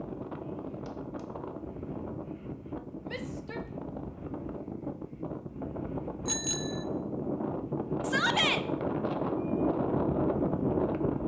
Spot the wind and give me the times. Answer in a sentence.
You can hear the wind from 0.0 to 11.2 s.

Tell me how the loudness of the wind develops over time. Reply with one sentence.
The volume of the wind goes up.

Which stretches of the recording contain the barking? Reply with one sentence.
You can't hear the barking here.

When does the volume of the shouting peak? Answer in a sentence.
The volume of the shouting peaks at 8 seconds.